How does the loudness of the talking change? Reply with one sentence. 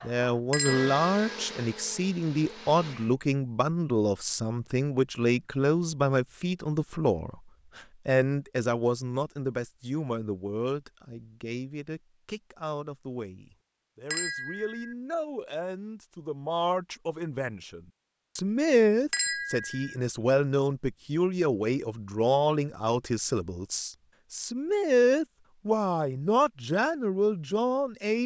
The loudness of the talking goes down, then up.